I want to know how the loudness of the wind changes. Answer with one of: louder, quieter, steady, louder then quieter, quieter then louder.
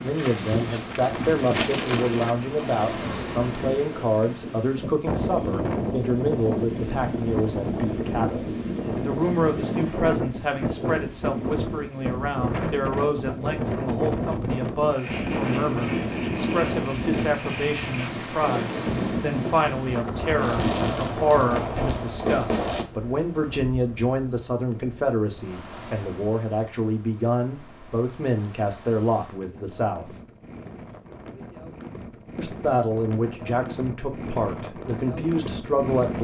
quieter then louder.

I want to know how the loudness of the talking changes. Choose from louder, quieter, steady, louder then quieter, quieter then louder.
steady.